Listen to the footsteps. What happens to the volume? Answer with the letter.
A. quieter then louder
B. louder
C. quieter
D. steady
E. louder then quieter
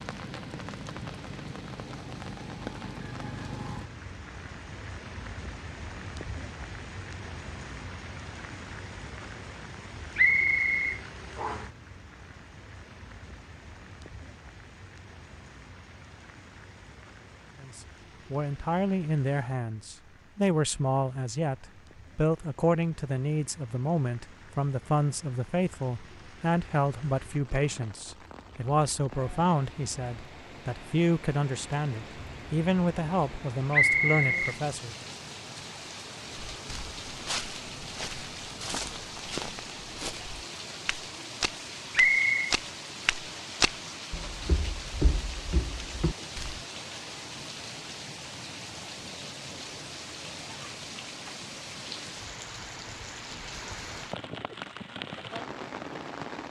E.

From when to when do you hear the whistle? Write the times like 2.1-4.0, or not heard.
10.2-11.6, 33.7-34.4, 42.0-42.5.